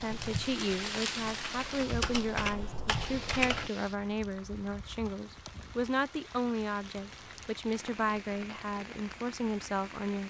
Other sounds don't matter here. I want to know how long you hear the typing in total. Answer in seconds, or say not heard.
4 s.